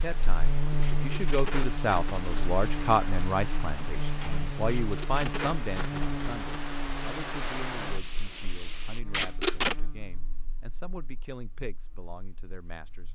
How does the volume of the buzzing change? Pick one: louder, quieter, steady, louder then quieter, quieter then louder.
quieter.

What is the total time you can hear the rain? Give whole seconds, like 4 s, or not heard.
9 s.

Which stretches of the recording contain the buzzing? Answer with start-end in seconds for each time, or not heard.
0.0-13.1.